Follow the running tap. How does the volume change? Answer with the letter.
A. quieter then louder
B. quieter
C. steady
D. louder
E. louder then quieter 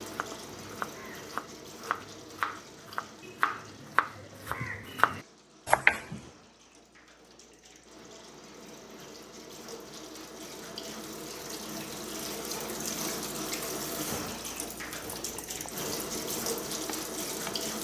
A.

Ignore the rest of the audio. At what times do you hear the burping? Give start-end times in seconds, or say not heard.
not heard.